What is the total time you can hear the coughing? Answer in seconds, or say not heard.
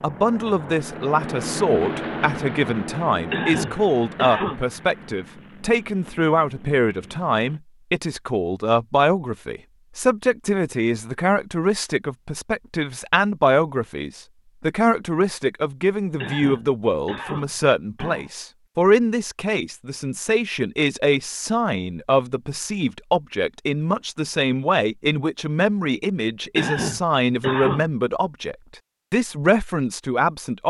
5 s.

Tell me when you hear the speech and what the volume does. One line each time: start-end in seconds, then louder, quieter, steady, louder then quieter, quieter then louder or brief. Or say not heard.
0.0-30.6 steady.